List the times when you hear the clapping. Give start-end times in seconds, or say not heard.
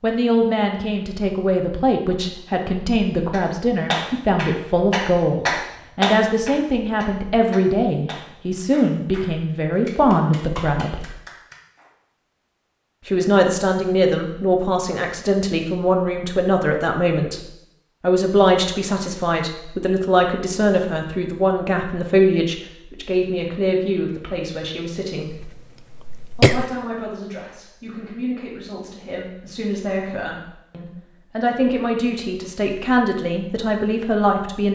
3.3-11.9.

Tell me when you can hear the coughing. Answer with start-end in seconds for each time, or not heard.
25.3-26.7.